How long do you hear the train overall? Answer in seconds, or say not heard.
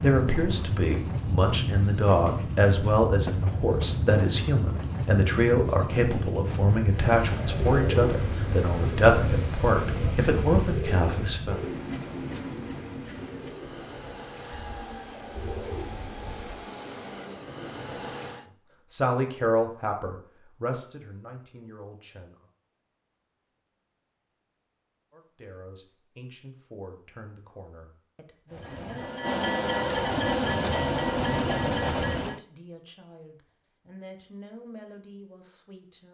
22 s.